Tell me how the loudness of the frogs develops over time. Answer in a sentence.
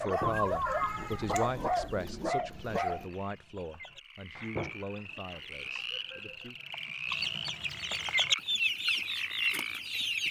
The loudness of the frogs goes up.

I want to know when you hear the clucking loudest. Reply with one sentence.
The volume of the clucking peaks at 8 seconds.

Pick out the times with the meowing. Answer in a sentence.
The meowing can be heard from 0.3 to 2.0 s.